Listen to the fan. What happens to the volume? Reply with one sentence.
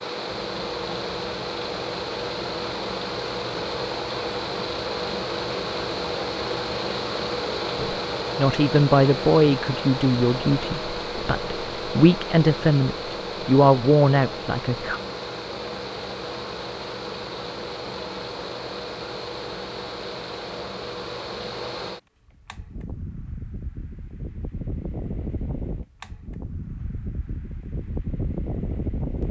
The loudness of the fan goes down.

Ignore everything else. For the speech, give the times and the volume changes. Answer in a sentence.
The speech can be heard from 7.8 to 15.0 s, getting quieter then louder.